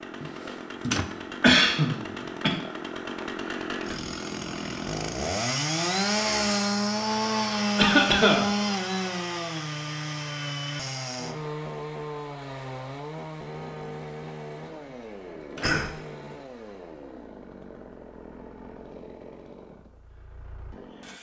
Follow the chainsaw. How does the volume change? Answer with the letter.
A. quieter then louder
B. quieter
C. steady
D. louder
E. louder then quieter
E.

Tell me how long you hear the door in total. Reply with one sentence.
You can hear the door for 2 seconds altogether.